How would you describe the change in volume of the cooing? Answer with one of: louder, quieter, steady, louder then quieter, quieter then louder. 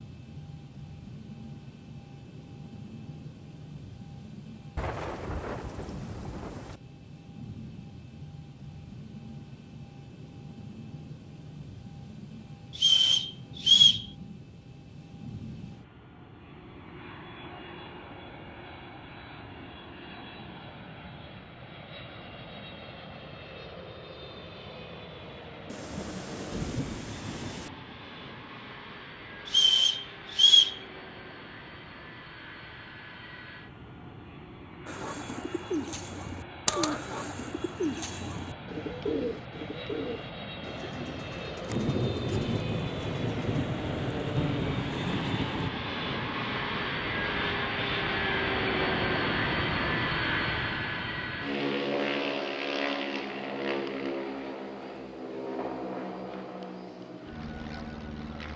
quieter.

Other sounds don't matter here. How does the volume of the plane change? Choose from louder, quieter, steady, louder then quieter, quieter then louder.
louder.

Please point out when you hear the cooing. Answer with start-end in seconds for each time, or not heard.
34.9-43.6.